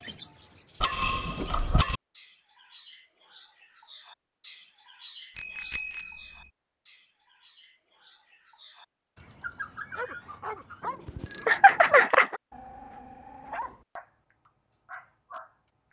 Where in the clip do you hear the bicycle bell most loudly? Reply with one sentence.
The loudest moment of the bicycle bell is at 1 second.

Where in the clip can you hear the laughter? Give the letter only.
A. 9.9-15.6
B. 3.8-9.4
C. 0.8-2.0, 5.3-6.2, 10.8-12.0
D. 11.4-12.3
D.